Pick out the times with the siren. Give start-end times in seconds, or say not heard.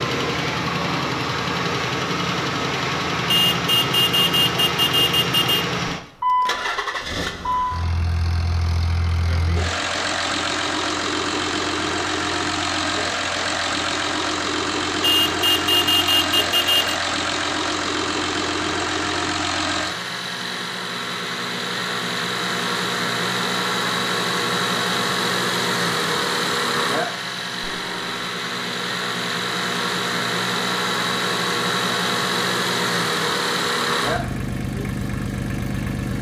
not heard.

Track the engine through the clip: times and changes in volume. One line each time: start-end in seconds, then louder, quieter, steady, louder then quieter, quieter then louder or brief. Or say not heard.
0.0-36.1 steady.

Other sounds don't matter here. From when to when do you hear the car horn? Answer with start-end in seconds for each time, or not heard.
3.2-5.7, 15.0-16.9, 27.6-28.3.